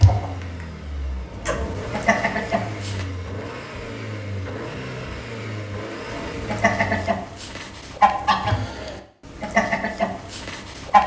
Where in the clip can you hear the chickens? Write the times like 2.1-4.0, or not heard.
0.0-3.0, 6.1-11.0.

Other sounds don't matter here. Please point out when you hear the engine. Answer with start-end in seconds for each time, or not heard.
0.0-7.2.